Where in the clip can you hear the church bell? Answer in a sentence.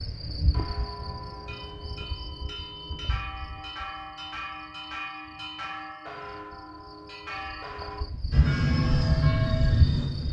You can hear the church bell from 0.3 to 9.9 s.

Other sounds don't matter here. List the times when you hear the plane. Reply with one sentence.
The plane can be heard from 8.3 to 10.2 s.